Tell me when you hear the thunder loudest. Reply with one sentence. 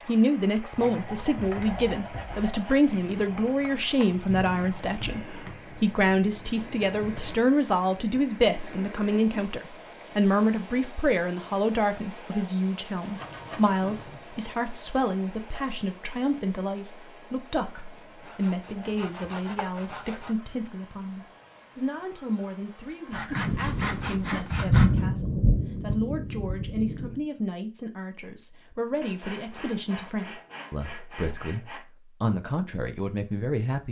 The volume of the thunder peaks at 25 seconds.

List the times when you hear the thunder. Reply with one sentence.
The thunder can be heard from 2.9 to 7.3 s and from 23.4 to 27.1 s.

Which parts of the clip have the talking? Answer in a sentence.
The talking can be heard from 0.1 to 33.8 s.